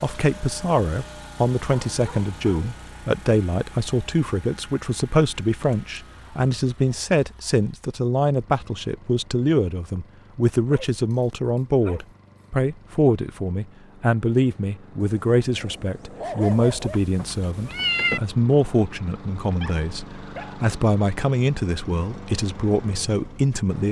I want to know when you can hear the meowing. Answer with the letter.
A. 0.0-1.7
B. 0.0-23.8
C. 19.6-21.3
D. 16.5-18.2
D.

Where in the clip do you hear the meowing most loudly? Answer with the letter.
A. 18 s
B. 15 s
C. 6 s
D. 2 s
A.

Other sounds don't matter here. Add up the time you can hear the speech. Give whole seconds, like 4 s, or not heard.
24 s.